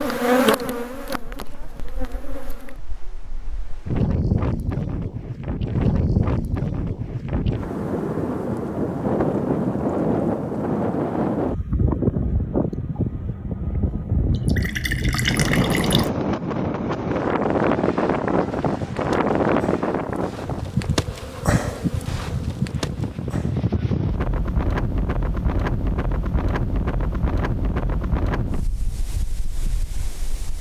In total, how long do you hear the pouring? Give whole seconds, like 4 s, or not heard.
2 s.